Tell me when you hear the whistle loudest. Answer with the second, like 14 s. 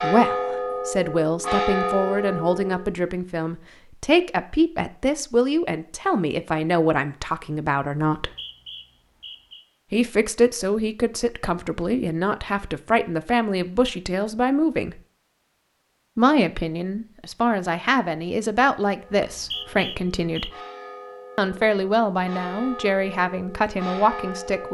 20 s.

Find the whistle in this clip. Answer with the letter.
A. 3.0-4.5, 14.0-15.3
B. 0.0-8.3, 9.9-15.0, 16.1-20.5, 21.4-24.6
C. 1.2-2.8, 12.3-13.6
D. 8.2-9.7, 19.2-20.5
D.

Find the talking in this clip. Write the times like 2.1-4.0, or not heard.
0.0-8.3, 9.9-15.0, 16.1-20.5, 21.4-24.6.